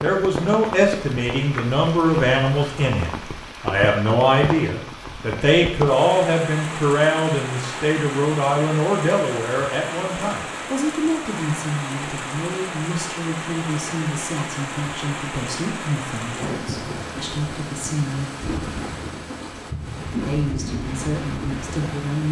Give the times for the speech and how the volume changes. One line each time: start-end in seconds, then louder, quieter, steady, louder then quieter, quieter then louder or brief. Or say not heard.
0.0-18.3 quieter
20.2-22.2 brief.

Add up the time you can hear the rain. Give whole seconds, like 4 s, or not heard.
22 s.